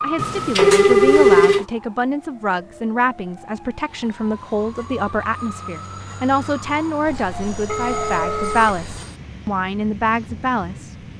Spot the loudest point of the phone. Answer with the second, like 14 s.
1 s.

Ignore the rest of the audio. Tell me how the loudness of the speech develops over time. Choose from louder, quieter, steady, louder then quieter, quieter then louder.
steady.